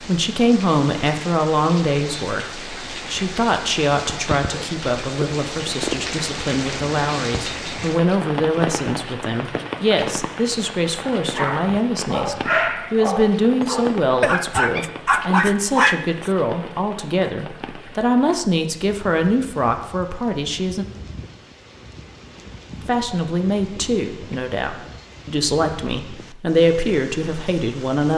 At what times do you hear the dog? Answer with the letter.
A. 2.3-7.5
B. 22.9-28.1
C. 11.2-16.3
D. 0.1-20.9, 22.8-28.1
C.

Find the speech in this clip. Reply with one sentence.
The speech can be heard from 0.1 to 20.9 s and from 22.8 to 28.1 s.